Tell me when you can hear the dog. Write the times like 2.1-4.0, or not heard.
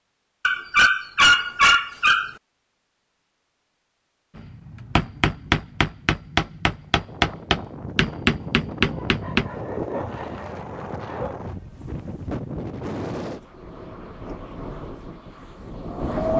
0.5-2.3, 8.8-11.3.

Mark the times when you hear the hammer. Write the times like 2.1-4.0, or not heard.
4.3-9.4.